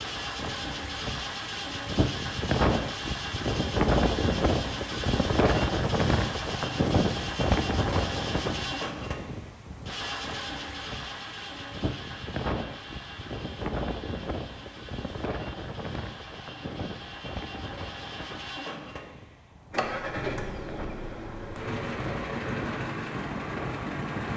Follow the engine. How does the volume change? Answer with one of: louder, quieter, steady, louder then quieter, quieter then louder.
quieter then louder.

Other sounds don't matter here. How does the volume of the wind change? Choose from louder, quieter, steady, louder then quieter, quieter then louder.
quieter.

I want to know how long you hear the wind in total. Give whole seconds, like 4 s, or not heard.
24 s.